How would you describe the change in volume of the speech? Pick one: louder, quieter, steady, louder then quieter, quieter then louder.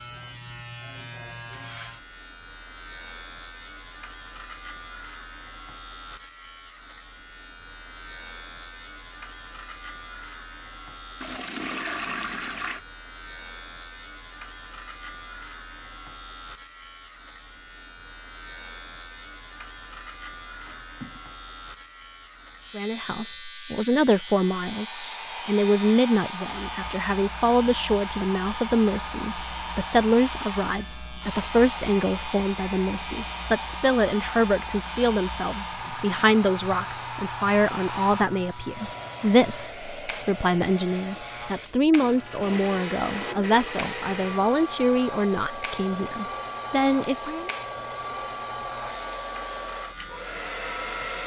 steady.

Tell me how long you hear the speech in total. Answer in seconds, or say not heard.
25 s.